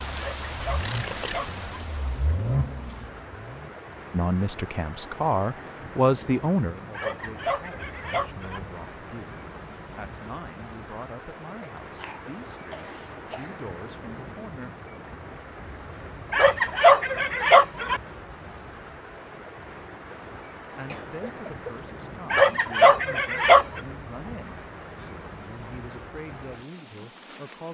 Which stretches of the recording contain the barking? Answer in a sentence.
The barking can be heard from 0.1 to 1.6 s, from 7.0 to 8.6 s, from 16.3 to 18.0 s and from 22.3 to 23.8 s.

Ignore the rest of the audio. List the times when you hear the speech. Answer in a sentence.
The speech can be heard from 4.1 to 14.7 s and from 20.8 to 27.6 s.